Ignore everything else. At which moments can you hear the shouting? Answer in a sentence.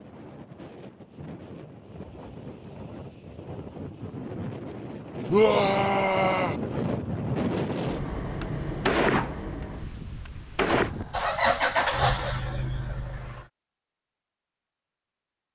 The shouting can be heard from 5.3 to 6.6 s.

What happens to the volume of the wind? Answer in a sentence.
The volume of the wind goes up, then down.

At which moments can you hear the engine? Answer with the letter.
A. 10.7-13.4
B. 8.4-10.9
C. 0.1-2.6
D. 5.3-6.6
A.